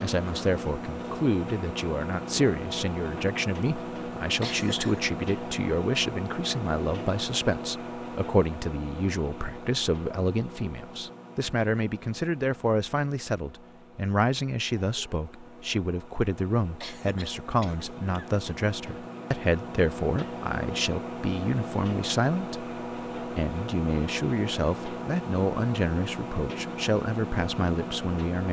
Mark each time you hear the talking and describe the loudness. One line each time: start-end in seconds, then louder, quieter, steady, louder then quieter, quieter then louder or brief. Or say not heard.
0.0-28.4 steady.